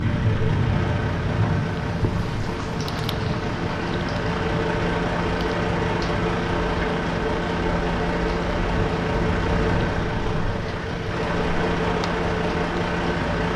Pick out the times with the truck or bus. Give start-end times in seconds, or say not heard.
0.0-13.5.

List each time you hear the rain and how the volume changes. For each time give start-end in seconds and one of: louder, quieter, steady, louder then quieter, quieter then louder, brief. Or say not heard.
0.0-13.4 quieter.